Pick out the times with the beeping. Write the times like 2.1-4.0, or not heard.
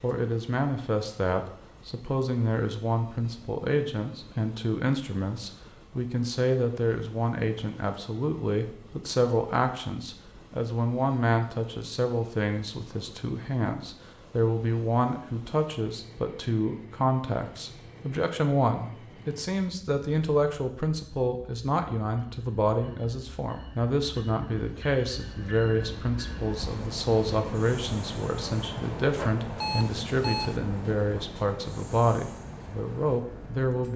29.6-30.6.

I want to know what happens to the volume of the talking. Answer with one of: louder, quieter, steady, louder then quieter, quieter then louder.
steady.